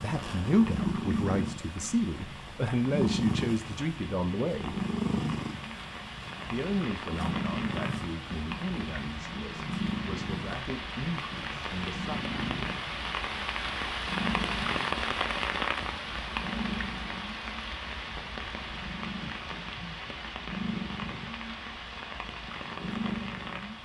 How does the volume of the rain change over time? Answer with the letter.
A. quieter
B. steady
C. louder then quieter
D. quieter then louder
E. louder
C.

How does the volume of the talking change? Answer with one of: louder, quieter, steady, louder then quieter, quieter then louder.
quieter.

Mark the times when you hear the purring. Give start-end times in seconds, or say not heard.
0.0-23.8.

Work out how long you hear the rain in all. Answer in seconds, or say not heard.
24 s.